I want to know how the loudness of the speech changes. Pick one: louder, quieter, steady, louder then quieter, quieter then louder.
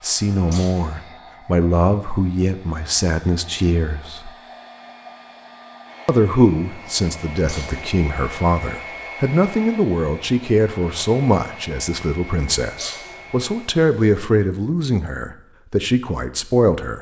steady.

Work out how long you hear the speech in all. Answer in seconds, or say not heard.
15 s.